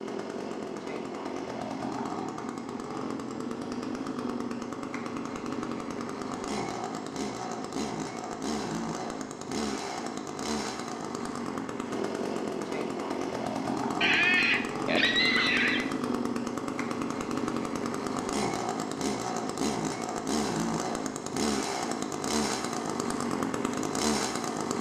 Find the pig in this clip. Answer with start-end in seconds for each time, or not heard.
14.0-15.8.